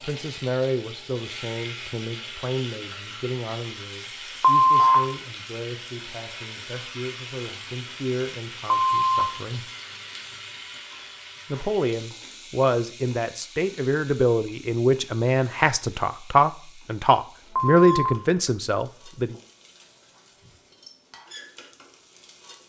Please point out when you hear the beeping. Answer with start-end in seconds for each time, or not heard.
4.4-5.0, 8.7-9.2, 17.6-18.5.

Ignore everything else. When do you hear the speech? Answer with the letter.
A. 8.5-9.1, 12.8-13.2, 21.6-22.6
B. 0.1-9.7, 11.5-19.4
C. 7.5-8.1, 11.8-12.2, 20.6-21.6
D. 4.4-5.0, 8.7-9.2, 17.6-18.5
B.